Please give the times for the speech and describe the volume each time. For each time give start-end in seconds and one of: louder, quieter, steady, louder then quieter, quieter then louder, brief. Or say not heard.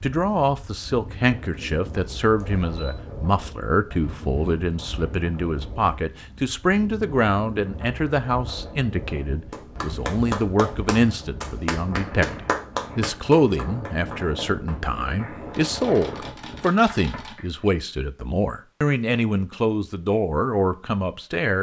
0.0-21.5 steady.